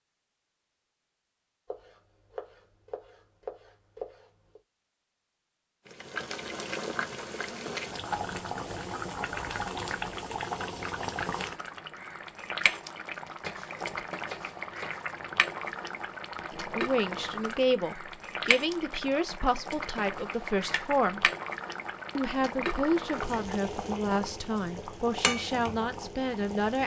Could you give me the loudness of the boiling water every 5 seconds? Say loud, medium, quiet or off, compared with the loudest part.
off, loud, loud, loud, loud, loud.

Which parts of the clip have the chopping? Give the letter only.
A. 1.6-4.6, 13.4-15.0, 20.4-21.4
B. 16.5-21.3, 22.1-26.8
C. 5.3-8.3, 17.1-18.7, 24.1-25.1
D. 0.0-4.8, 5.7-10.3
A.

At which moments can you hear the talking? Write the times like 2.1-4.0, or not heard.
16.5-21.3, 22.1-26.8.